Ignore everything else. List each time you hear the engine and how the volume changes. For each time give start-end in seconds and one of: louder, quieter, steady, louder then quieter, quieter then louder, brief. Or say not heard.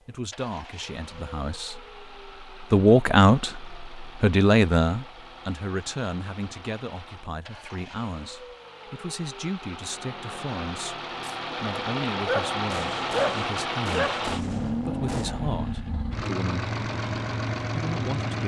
0.0-18.4 louder.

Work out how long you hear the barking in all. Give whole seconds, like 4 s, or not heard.
2 s.